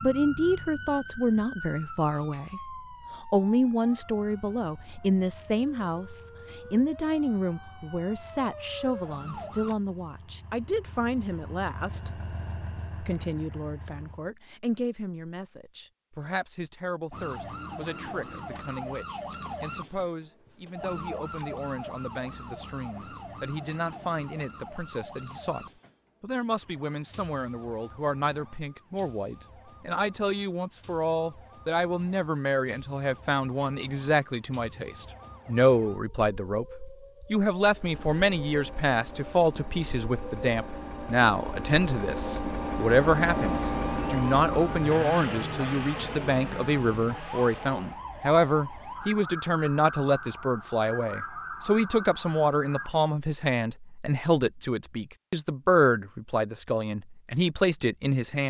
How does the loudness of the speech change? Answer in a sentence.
The volume of the speech goes down, then up.